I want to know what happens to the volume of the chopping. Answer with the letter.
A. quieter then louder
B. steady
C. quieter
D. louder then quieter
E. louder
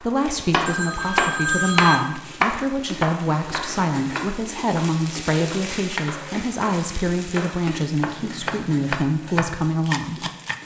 A.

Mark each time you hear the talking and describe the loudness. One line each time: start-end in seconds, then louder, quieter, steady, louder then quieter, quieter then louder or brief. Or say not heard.
0.0-10.2 steady.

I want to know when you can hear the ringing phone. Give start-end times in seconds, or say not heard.
0.2-2.0.